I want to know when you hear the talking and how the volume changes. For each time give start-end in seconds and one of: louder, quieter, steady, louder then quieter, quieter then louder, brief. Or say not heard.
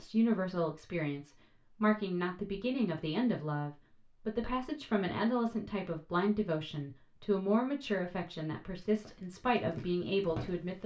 0.0-10.8 steady.